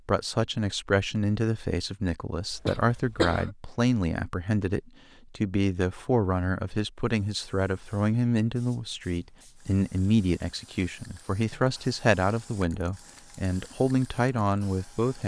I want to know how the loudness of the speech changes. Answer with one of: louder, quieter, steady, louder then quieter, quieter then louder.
steady.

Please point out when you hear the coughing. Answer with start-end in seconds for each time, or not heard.
2.5-3.5.